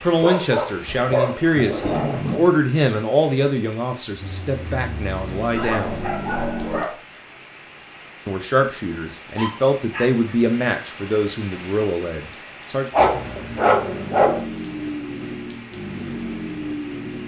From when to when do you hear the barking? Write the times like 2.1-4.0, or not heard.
0.2-2.5, 5.5-6.9, 9.3-10.3, 12.9-14.4.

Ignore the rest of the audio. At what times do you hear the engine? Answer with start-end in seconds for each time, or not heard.
4.2-6.8, 12.9-17.2.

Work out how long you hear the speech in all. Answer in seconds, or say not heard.
11 s.